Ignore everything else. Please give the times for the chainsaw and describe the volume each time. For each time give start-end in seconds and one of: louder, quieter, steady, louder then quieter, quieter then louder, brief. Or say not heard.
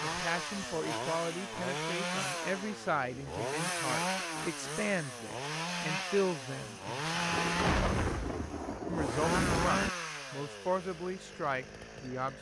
0.0-12.3 steady.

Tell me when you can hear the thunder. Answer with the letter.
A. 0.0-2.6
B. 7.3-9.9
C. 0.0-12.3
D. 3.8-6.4
B.